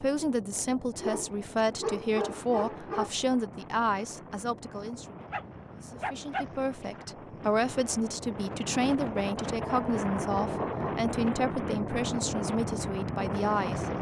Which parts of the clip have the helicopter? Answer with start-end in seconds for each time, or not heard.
not heard.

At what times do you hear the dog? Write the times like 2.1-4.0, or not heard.
0.9-3.1, 5.2-6.9, 9.6-11.1.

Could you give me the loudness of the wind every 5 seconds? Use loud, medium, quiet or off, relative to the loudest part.
quiet, medium, loud.